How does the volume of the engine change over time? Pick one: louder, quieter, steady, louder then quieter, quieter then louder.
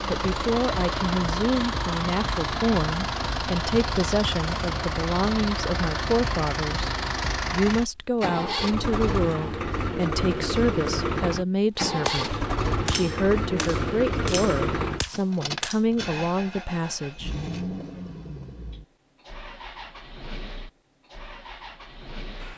quieter.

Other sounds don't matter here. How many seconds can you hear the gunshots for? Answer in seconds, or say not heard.
4 s.